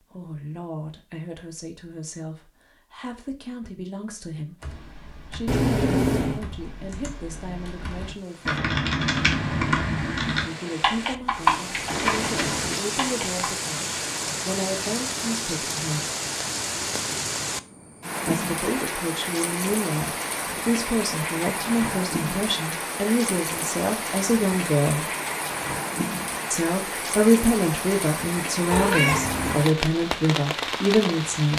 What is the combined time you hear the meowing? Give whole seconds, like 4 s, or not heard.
3 s.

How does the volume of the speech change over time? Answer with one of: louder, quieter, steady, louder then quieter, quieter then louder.
louder.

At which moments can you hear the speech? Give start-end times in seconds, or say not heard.
0.0-4.7, 5.3-8.8, 10.4-16.1, 18.2-25.1, 26.5-31.5.